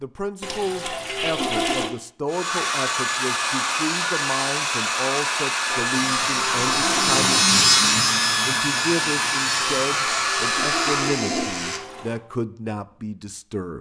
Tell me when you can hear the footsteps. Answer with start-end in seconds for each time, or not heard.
not heard.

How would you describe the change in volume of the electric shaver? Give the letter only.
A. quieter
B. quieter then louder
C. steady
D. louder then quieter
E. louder
D.